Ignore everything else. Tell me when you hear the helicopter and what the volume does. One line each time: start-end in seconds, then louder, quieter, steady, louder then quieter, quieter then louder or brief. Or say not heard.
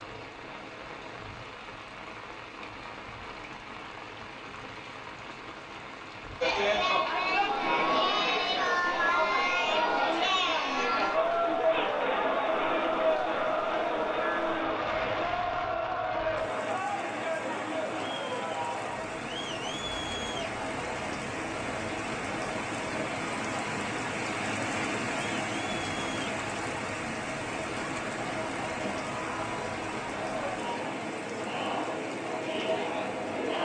not heard.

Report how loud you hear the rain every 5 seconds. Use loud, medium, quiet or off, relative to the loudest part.
medium, medium, medium, medium, loud, loud, medium.